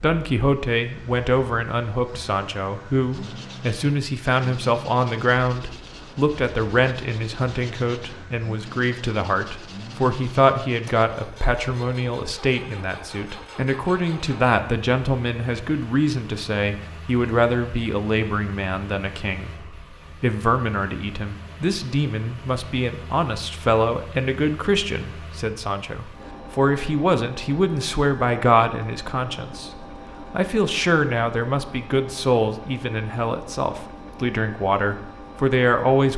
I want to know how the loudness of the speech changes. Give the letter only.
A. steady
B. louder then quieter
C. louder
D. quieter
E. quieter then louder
A.